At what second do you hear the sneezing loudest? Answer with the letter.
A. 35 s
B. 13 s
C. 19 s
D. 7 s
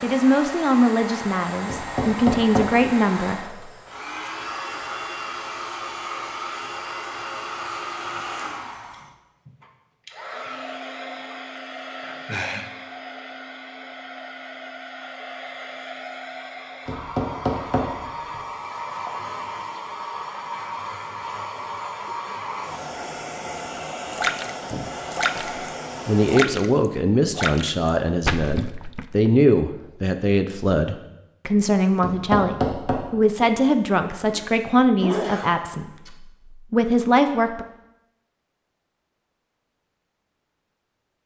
A.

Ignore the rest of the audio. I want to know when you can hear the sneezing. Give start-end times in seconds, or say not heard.
12.0-12.7, 34.2-36.1.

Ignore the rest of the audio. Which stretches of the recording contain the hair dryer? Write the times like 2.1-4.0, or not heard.
0.0-26.4.